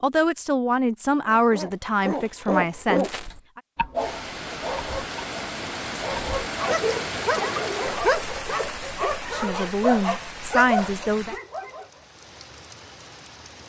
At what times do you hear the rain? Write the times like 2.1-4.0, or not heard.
4.0-13.6.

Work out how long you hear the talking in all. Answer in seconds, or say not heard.
6 s.